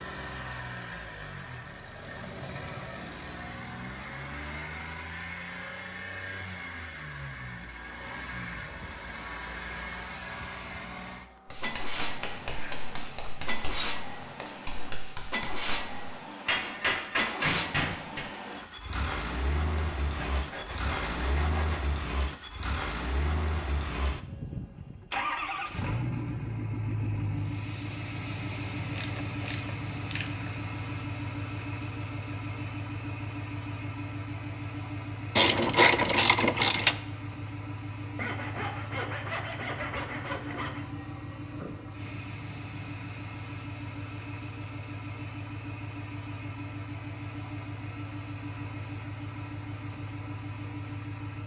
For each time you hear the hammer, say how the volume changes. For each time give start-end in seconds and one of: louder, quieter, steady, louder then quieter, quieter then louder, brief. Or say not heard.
11.4-18.2 louder.